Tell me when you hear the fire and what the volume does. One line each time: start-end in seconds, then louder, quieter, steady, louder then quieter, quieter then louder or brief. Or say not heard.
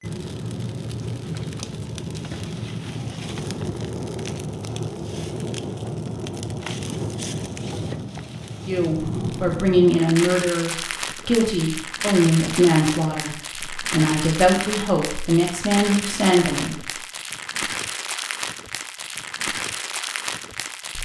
0.0-21.0 steady.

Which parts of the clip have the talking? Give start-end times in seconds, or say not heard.
8.7-16.8.